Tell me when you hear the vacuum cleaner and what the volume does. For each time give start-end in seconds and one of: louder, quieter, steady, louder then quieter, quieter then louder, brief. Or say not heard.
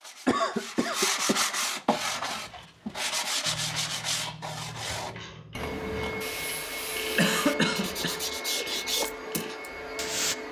5.5-10.4 steady.